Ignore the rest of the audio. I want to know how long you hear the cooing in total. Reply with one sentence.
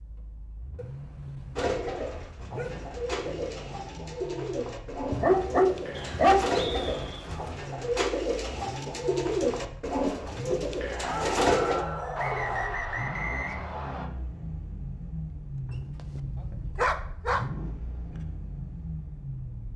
The cooing can be heard for 10 seconds in total.